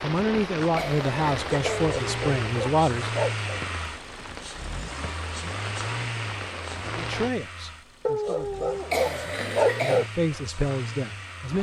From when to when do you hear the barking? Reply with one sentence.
You can hear the barking from 1.6 to 3.6 s and from 8.1 to 10.1 s.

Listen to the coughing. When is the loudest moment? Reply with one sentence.
The loudest moment of the coughing is at 10 seconds.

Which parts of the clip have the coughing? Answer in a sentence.
The coughing can be heard from 0.8 to 1.9 s and from 8.9 to 10.1 s.